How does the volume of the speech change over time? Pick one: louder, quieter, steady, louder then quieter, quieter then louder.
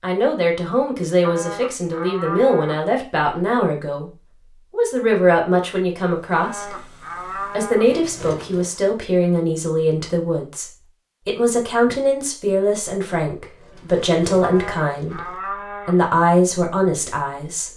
steady.